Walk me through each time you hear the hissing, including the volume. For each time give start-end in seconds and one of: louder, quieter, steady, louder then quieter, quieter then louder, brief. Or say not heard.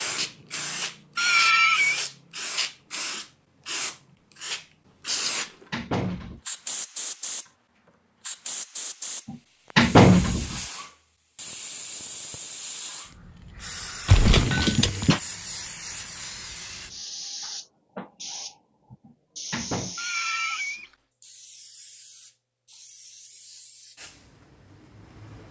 0.0-25.4 quieter.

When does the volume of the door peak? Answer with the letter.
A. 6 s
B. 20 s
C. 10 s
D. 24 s
C.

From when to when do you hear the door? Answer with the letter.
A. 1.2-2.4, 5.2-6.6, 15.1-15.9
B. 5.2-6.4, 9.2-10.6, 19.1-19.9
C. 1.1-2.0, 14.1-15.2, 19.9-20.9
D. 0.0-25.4
B.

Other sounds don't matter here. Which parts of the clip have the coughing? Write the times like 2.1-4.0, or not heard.
1.1-2.0, 14.1-15.2, 19.9-20.9.